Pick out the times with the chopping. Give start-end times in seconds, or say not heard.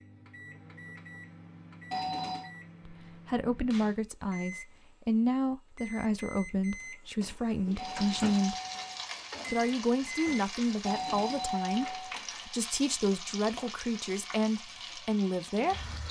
not heard.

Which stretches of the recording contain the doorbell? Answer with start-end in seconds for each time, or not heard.
1.9-2.5, 7.8-9.1, 10.8-12.2.